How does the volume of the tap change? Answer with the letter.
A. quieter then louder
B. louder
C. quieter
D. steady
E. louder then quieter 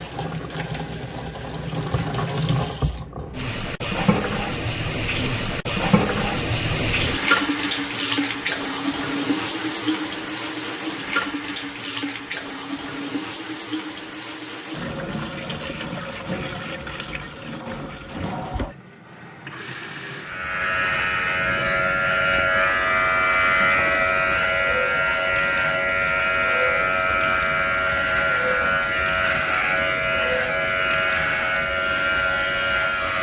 C.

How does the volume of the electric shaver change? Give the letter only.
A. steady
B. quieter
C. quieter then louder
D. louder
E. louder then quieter
A.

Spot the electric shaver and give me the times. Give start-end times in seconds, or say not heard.
20.2-33.1.